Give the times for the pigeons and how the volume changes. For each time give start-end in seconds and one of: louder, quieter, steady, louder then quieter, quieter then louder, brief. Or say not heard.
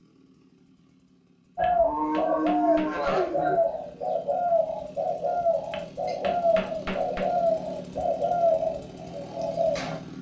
1.6-10.0 steady.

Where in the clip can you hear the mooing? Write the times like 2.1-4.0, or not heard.
1.6-3.6.